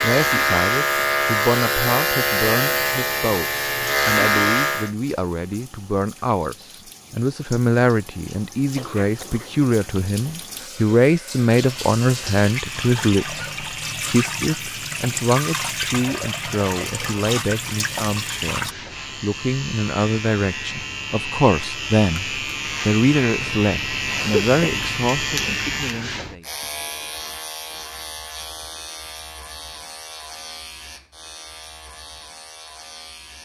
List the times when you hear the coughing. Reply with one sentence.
The coughing can be heard from 8.8 to 9.6 s and from 24.1 to 24.8 s.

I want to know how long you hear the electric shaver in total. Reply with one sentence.
The electric shaver can be heard for 27 seconds in total.